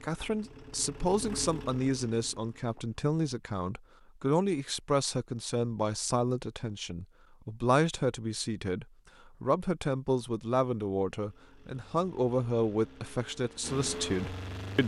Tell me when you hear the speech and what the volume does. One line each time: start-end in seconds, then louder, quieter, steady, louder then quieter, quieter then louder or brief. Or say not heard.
0.0-14.8 steady.